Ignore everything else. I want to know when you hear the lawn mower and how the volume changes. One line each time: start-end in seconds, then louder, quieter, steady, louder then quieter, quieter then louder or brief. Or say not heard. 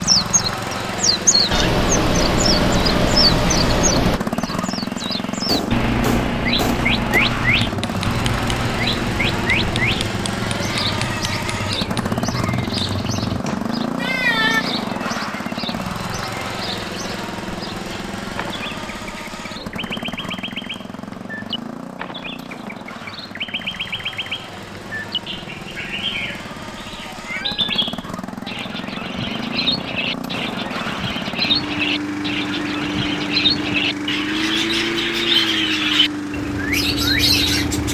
0.0-37.9 quieter then louder.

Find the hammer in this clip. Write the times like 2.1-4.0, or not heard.
5.5-13.7.